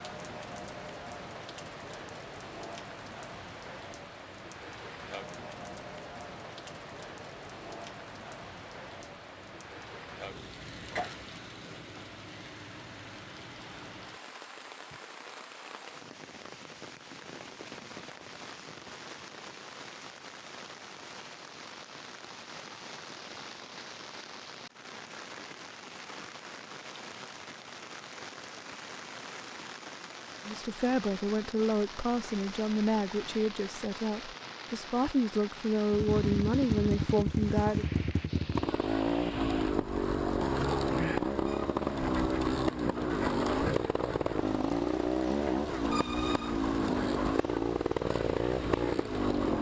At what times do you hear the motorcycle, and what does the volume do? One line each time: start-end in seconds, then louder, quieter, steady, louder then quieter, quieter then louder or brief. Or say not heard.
35.9-49.5 steady.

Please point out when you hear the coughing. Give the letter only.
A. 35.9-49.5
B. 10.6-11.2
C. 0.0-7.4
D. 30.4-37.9
B.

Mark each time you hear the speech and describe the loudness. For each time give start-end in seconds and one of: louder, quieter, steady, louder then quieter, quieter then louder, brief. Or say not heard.
30.4-37.9 quieter then louder.